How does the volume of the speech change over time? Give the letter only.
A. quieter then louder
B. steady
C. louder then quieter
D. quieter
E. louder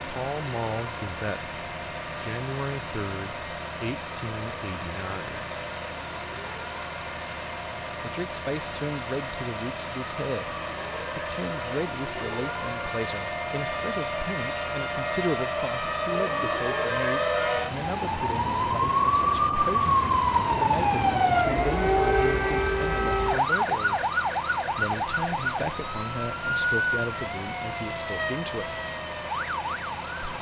B.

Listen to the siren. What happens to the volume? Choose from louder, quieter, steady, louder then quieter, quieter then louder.
louder then quieter.